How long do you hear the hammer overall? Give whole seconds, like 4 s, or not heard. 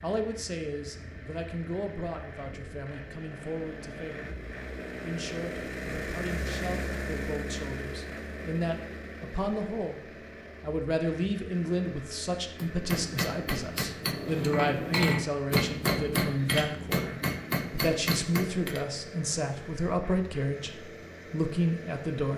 6 s.